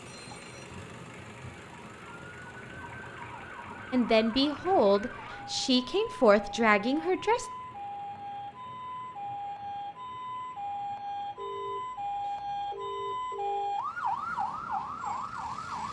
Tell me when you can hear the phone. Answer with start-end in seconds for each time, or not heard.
0.1-0.8, 11.3-13.8.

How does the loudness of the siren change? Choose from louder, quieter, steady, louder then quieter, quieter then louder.
louder.